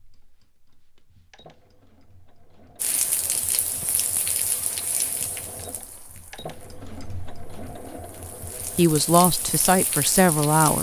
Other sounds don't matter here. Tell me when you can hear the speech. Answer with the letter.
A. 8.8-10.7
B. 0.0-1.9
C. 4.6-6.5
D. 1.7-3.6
A.